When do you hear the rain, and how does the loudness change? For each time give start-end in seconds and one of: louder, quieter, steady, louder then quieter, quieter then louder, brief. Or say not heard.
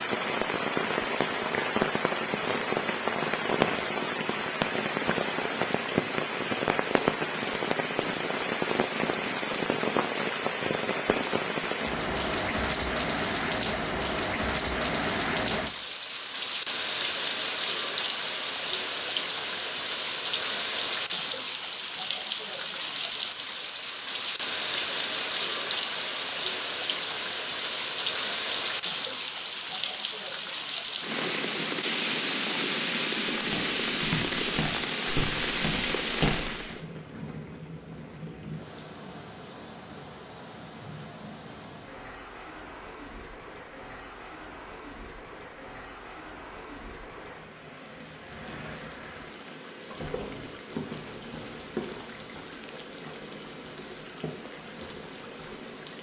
0.0-55.9 quieter.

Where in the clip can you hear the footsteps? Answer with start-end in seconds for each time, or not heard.
33.4-36.8, 49.9-55.8.